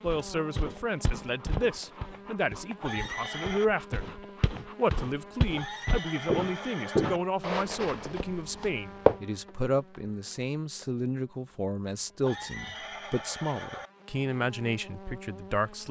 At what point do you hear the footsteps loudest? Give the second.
9 s.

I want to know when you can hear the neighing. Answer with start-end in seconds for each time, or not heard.
2.8-3.7, 5.5-7.2, 12.2-13.9.